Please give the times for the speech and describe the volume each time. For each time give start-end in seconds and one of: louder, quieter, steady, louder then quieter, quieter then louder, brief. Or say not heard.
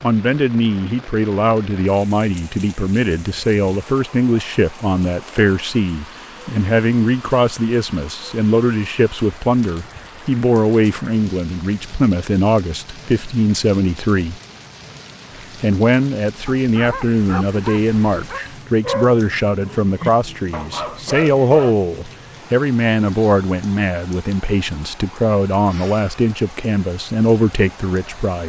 0.0-14.4 steady
15.3-28.4 steady.